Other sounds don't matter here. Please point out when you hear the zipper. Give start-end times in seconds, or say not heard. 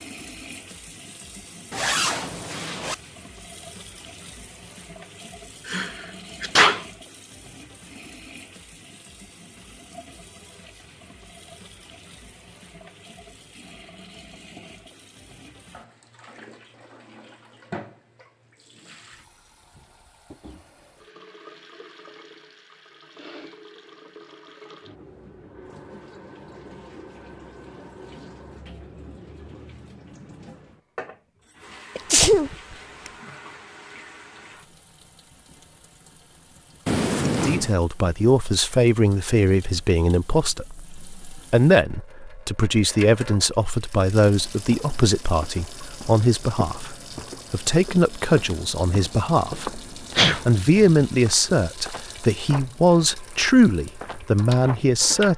1.7-3.0, 36.9-37.8.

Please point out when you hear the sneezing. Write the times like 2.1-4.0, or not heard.
5.7-6.8, 31.9-33.1, 50.1-50.8.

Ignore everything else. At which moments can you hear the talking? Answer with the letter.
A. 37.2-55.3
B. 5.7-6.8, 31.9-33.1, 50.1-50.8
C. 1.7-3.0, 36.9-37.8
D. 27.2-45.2
A.